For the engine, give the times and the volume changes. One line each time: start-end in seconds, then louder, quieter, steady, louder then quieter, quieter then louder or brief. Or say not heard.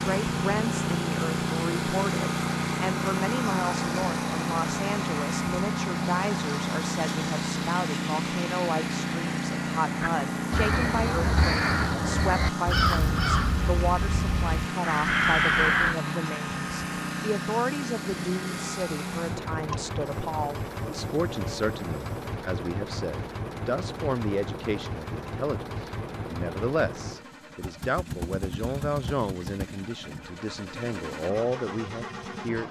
0.0-32.6 quieter.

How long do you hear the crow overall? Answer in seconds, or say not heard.
6 s.